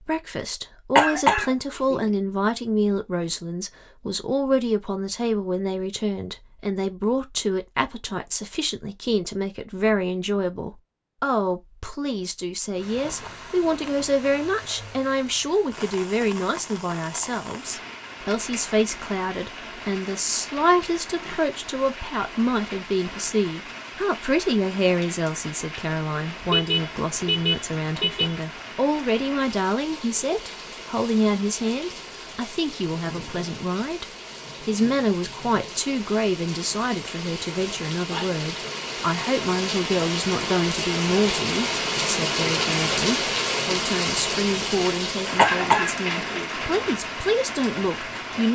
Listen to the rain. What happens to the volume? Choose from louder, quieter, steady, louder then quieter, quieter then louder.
louder.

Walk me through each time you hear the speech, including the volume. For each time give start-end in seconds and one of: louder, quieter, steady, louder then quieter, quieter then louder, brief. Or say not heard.
0.0-48.5 steady.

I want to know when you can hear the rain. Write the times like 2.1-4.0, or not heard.
12.8-48.5.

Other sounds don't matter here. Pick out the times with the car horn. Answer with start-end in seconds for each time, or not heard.
26.4-28.4.